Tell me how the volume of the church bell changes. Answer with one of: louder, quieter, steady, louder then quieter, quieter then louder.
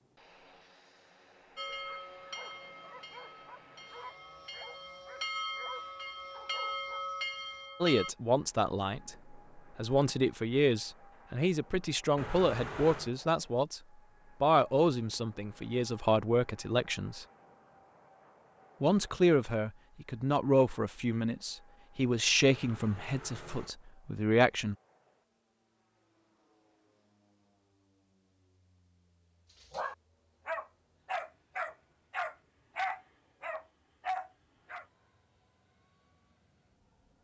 quieter then louder.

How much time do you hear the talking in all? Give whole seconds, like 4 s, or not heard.
15 s.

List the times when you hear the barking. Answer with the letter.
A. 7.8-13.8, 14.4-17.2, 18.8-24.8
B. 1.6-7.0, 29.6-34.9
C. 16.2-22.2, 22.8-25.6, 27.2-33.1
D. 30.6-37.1
B.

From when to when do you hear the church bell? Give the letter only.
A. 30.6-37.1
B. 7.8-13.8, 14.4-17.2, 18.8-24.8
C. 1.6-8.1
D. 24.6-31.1
C.